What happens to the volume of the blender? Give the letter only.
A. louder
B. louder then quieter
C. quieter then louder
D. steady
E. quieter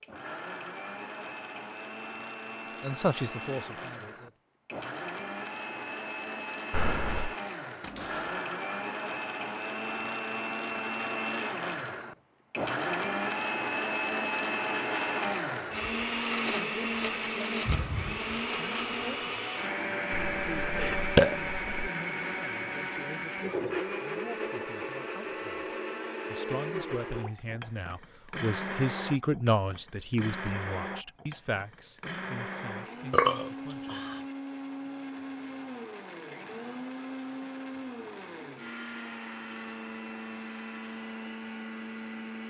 B.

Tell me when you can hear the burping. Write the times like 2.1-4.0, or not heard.
6.7-7.3, 20.1-21.9, 33.1-34.0.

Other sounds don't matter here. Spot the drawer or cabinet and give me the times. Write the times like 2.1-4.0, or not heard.
7.8-8.4.